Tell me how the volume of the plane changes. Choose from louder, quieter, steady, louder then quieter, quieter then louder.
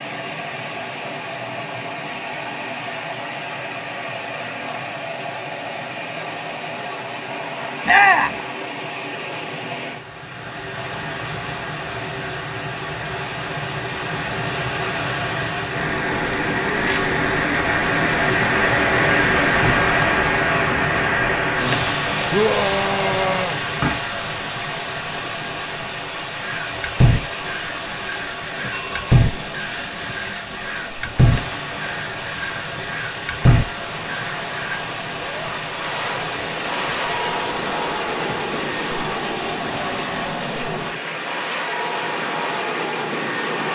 louder.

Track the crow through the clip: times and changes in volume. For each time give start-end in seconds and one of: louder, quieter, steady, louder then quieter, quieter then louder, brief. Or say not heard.
26.4-34.8 quieter then louder.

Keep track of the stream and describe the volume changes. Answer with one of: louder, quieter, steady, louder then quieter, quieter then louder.
louder then quieter.